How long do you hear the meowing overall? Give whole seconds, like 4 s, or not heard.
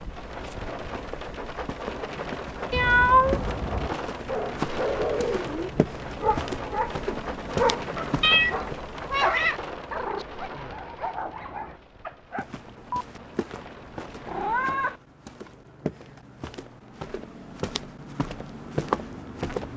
4 s.